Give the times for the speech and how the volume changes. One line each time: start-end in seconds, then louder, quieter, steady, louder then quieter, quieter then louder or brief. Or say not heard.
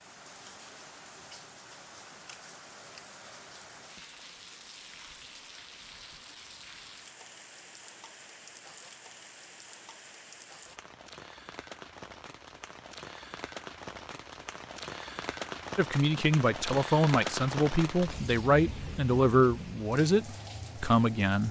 15.8-21.4 steady.